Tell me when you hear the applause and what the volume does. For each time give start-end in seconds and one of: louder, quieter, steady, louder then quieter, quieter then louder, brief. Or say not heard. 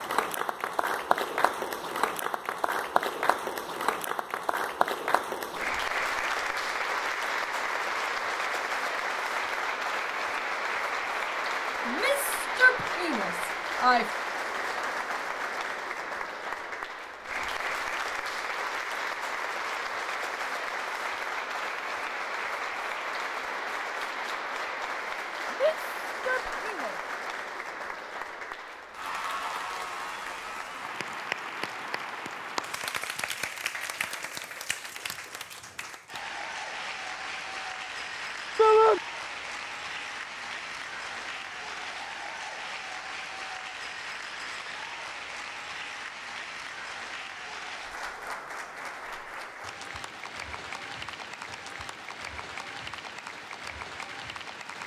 0.0-54.8 quieter.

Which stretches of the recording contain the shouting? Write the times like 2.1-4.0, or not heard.
11.8-14.1, 25.5-26.9, 38.5-39.0.